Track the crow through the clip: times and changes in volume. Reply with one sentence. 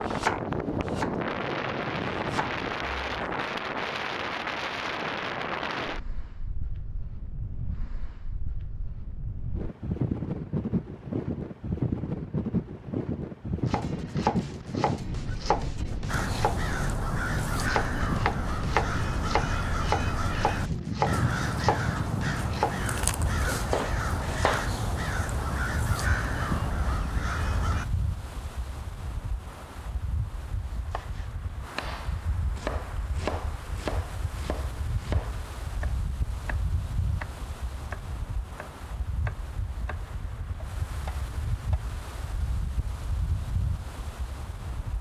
The crow can be heard from 16.1 to 27.9 s, at a steady volume.